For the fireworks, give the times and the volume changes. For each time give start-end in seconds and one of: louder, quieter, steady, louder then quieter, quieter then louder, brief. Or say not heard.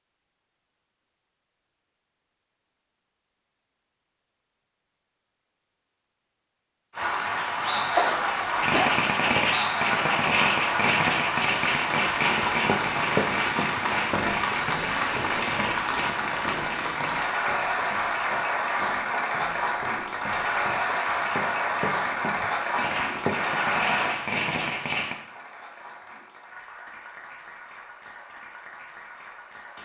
8.6-16.1 quieter
22.8-25.1 brief.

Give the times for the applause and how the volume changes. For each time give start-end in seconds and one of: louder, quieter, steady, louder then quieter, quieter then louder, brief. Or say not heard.
6.9-29.8 quieter.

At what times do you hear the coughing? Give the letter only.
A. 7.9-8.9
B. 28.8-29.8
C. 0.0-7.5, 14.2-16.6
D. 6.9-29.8
A.